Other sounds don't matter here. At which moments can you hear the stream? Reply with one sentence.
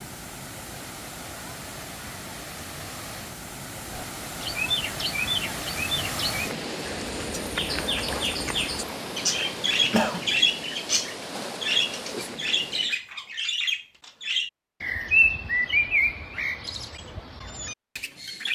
You can hear the stream from 0.0 to 13.0 s.